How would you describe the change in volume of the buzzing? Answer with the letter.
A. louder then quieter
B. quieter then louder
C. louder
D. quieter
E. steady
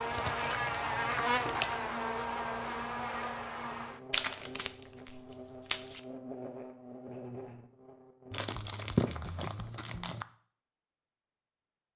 D.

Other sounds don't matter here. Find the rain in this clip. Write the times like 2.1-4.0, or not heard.
not heard.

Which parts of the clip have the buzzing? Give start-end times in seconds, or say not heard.
0.0-8.5.